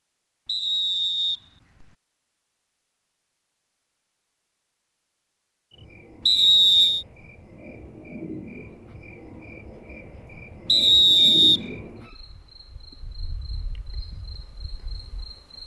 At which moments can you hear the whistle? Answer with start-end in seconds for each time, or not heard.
0.5-1.9, 6.2-7.0, 10.7-11.6.